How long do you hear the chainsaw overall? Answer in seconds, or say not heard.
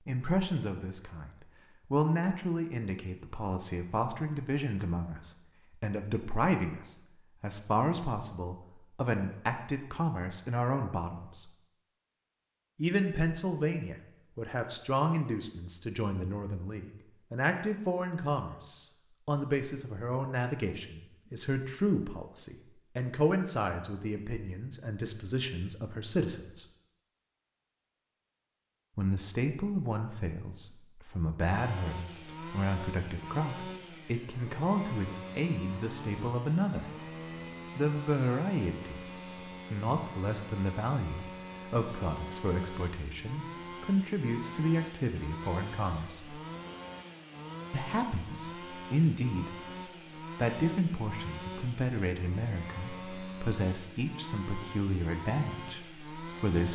25 s.